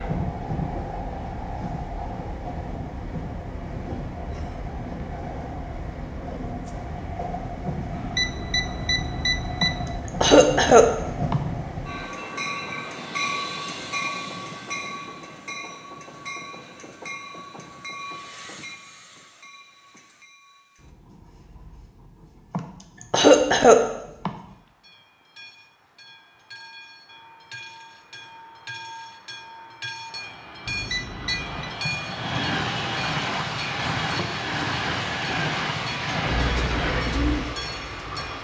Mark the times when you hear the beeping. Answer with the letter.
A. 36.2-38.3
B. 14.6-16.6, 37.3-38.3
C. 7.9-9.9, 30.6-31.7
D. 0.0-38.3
C.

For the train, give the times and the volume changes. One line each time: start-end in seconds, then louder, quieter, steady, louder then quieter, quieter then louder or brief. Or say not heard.
0.0-38.3 quieter then louder.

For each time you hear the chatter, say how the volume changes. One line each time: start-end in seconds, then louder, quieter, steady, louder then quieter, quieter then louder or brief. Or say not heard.
not heard.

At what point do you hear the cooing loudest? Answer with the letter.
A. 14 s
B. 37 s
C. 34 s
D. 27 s
B.